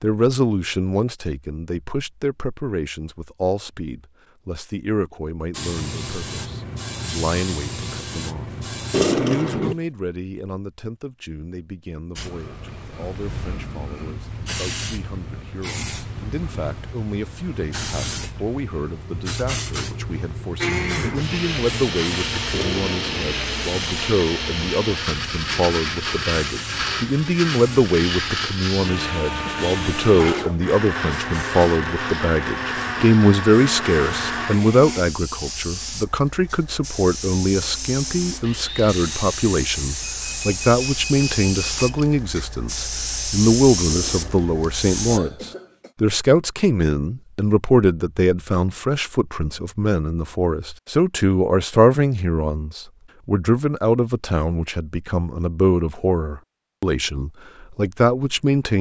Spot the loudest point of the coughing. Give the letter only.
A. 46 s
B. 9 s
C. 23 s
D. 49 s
B.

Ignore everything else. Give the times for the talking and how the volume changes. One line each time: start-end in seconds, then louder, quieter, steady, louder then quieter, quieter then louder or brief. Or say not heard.
0.0-58.7 louder.